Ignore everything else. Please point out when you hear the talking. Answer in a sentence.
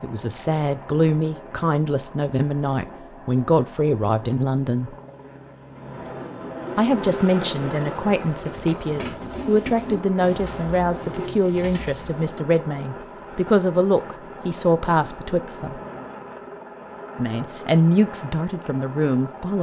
You can hear the talking from 0.0 to 5.0 s, from 6.8 to 15.8 s and from 17.1 to 19.5 s.